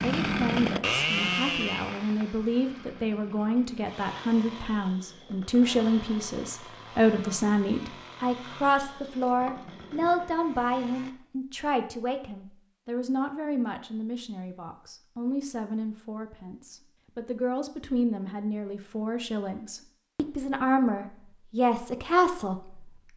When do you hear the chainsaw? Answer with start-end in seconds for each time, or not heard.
0.0-11.2.